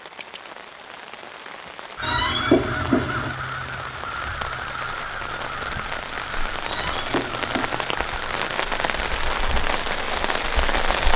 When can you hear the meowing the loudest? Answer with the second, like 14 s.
2 s.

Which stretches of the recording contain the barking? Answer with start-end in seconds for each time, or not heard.
not heard.